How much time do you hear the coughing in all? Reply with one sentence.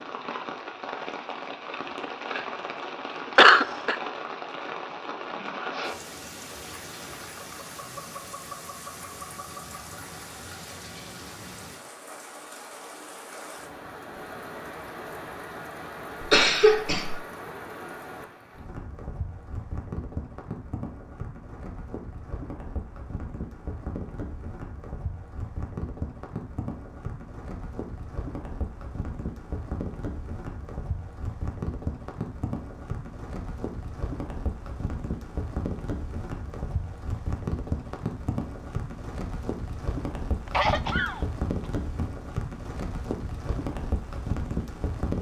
The coughing can be heard for 3 seconds in total.